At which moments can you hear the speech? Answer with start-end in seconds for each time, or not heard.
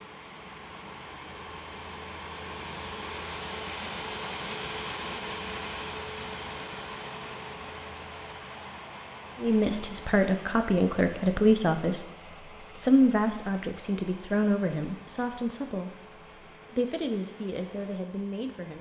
9.4-15.9, 16.7-18.7.